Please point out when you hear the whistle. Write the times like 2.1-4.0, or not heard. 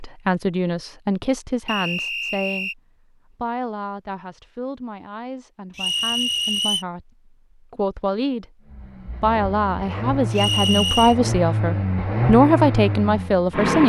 1.6-2.8, 5.8-6.8, 10.3-11.2.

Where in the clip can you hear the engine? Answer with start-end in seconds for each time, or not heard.
8.7-13.8.